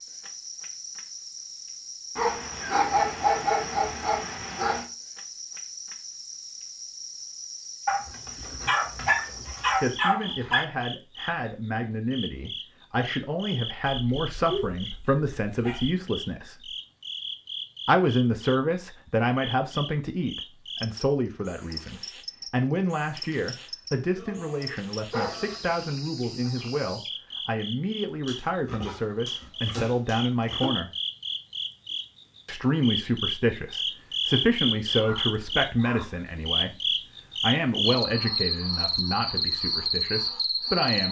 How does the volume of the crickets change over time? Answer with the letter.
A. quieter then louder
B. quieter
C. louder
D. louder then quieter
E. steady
C.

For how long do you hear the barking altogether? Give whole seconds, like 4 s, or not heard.
13 s.